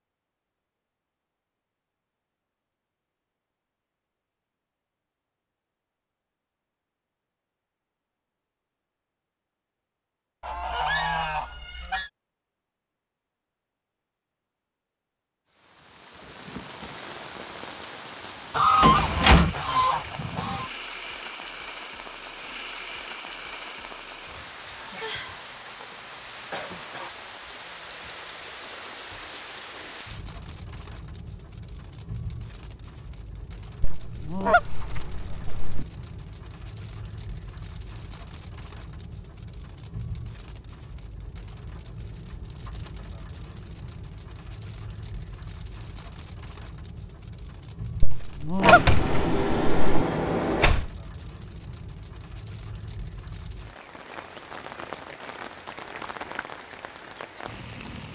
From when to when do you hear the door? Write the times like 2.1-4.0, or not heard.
18.8-19.6, 48.6-50.9.